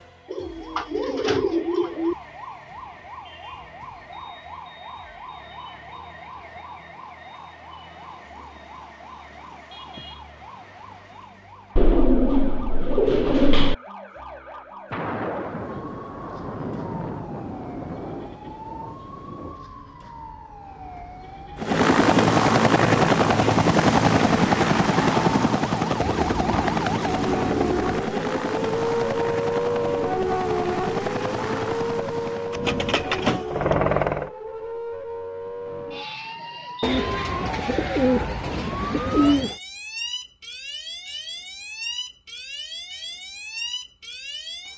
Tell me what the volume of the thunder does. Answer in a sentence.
The loudness of the thunder goes down.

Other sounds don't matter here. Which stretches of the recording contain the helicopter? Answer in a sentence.
The helicopter can be heard from 21.6 to 34.3 s.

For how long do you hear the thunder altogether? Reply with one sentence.
The thunder can be heard for 5 seconds in total.